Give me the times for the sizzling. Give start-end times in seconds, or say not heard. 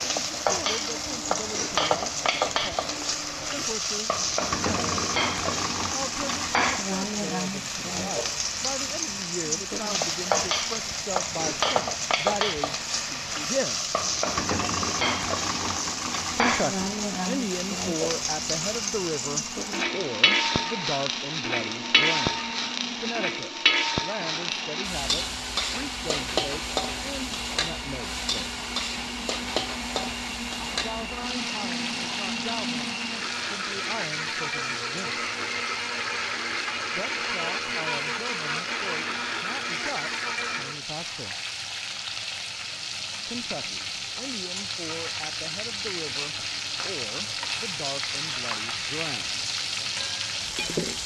0.0-51.0.